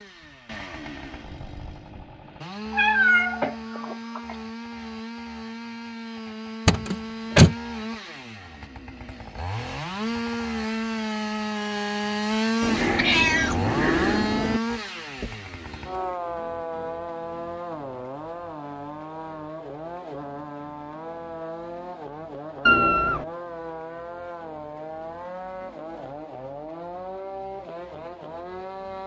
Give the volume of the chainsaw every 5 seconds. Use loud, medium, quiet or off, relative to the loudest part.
medium, medium, loud, medium, medium, medium.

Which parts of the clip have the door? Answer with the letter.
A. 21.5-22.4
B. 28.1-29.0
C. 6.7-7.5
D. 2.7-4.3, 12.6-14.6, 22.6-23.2
C.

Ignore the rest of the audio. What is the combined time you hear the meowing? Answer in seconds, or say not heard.
4 s.